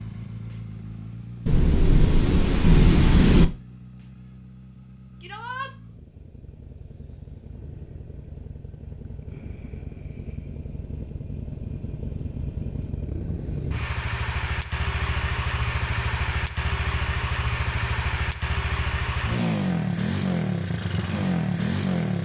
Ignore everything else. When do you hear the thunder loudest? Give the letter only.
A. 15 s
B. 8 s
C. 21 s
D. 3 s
D.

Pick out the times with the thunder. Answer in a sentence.
You can hear the thunder from 1.4 to 3.5 s.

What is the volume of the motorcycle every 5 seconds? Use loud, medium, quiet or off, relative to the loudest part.
quiet, quiet, medium, loud, loud.